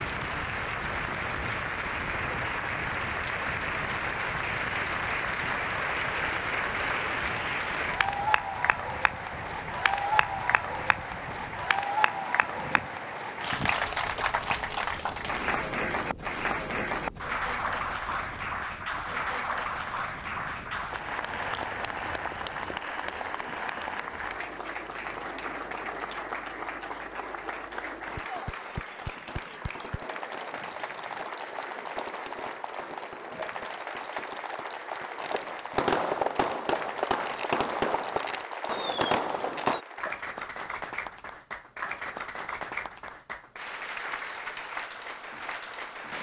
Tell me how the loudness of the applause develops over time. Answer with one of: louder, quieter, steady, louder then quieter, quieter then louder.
quieter.